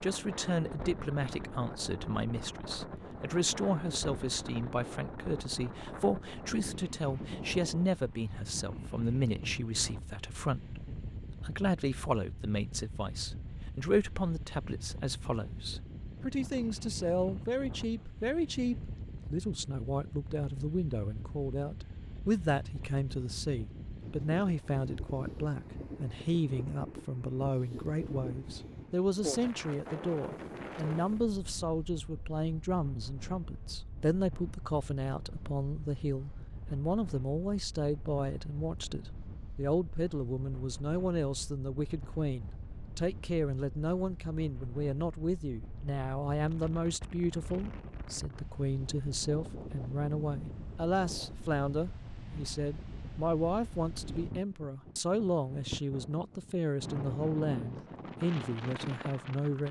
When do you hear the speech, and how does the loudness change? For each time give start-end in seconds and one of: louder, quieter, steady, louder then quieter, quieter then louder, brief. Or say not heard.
0.0-59.6 steady.